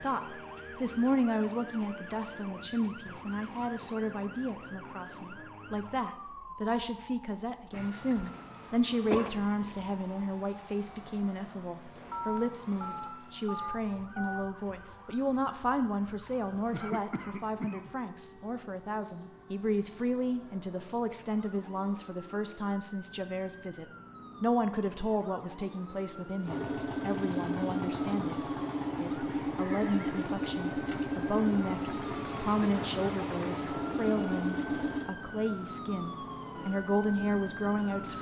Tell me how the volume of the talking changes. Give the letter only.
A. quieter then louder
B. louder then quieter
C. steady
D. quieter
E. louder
C.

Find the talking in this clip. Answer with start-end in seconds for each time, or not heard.
0.0-28.4, 29.0-38.1.